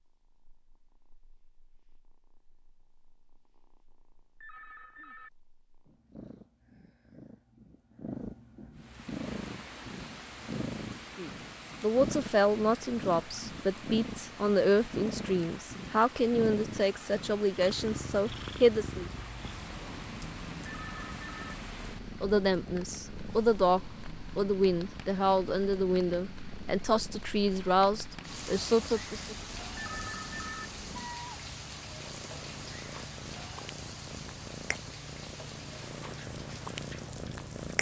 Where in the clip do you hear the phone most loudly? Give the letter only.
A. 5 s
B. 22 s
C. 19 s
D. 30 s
D.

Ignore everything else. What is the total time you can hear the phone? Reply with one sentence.
You can hear the phone for 3 seconds altogether.